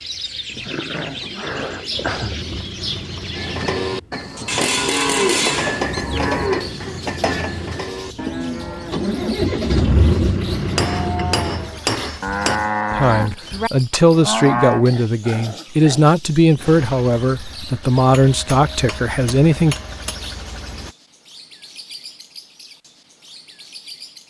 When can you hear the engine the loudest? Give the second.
10 s.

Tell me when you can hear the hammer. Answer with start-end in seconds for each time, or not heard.
4.5-6.5, 10.8-12.6, 17.9-20.2.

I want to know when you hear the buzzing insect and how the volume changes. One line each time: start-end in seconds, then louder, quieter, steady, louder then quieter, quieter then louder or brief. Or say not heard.
not heard.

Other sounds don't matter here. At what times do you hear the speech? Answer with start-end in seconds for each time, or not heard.
12.9-19.8.